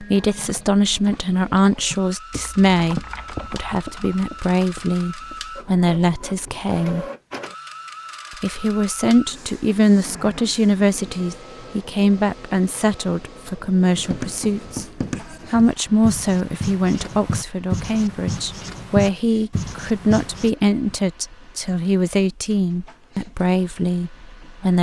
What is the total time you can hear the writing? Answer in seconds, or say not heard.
7 s.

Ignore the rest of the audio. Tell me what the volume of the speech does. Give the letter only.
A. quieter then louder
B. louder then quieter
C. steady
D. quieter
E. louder
C.